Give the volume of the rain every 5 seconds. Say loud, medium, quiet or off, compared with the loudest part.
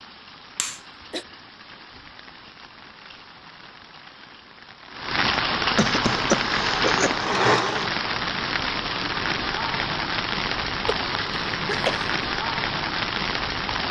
quiet, loud, loud.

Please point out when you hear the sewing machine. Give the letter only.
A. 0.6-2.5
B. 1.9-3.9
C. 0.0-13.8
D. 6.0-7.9
D.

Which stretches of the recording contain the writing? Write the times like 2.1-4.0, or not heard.
not heard.